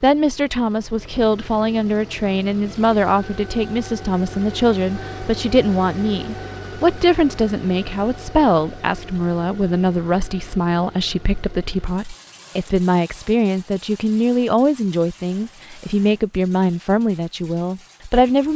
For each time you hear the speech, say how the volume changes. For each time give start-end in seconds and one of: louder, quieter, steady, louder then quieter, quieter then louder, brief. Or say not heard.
0.0-18.5 steady.